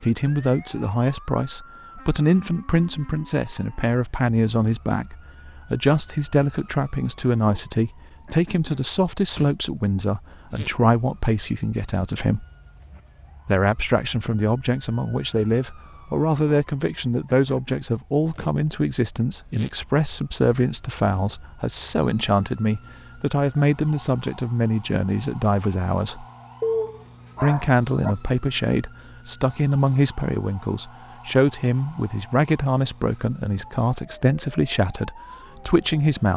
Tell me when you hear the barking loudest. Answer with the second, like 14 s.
27 s.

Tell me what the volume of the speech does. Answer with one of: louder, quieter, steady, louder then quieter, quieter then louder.
steady.